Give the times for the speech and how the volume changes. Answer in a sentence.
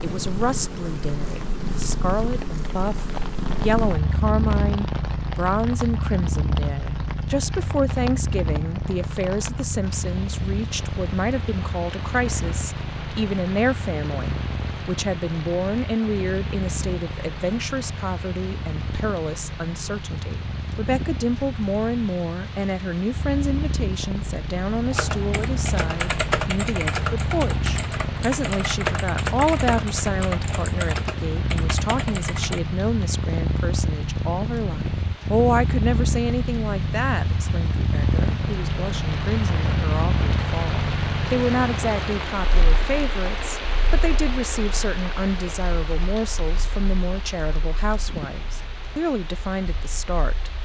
You can hear the speech from 0.0 to 50.5 s, at a steady volume.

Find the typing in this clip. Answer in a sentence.
The typing can be heard from 24.9 to 32.6 s.